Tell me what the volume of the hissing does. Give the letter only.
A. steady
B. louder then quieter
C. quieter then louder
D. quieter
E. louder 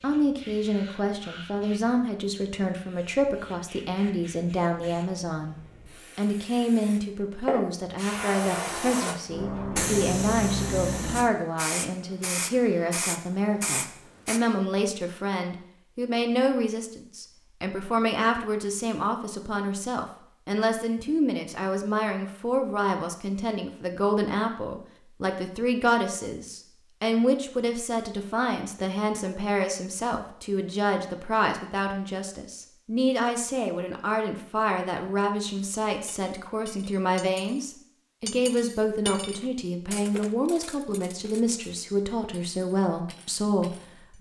E.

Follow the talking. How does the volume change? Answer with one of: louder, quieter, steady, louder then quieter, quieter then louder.
steady.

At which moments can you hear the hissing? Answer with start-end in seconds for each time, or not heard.
0.0-14.4.